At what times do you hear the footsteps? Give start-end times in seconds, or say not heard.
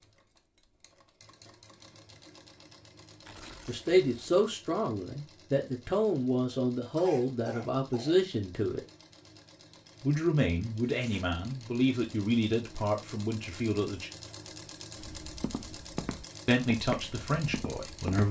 15.0-18.2.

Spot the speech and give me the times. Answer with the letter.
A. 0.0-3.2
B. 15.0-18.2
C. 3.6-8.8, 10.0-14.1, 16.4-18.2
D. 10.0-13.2
C.